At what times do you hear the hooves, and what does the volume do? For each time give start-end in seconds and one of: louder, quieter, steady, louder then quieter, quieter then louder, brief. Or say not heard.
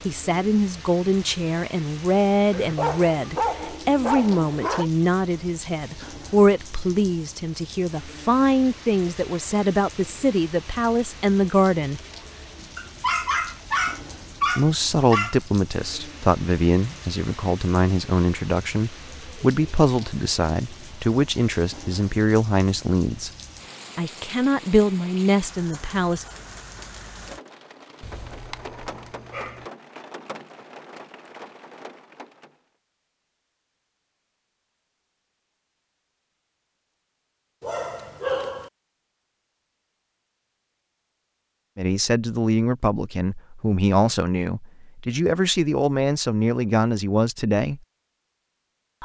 not heard.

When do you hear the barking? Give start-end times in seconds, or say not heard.
2.5-4.9, 12.8-15.4, 28.0-29.6, 37.6-38.7.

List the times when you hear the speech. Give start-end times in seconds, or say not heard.
0.1-12.0, 14.6-23.3, 23.9-26.2, 41.8-47.8.